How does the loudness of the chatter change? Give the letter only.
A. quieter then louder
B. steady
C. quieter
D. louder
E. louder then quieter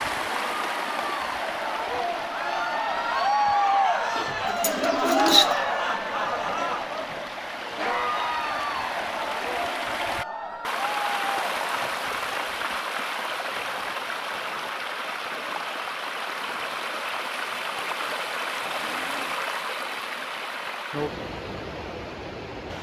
E.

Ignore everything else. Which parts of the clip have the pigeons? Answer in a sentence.
You can hear the pigeons from 4.2 to 5.6 s.